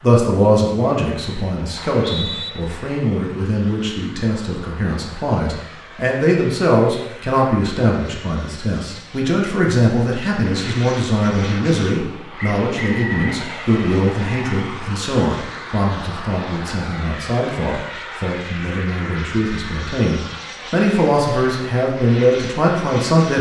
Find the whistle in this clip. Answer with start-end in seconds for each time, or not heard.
1.8-2.5, 12.3-13.4.